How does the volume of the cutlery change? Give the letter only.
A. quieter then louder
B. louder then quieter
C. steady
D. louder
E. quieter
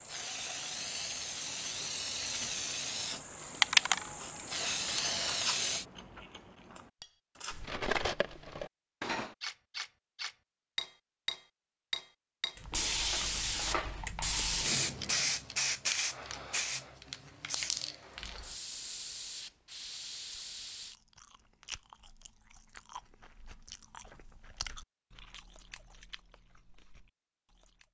E.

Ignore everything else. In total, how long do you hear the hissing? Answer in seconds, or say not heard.
14 s.